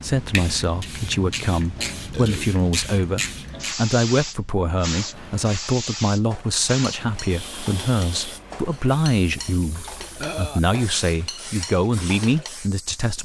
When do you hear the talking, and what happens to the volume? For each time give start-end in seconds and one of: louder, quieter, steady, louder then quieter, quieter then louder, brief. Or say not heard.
0.0-13.2 steady.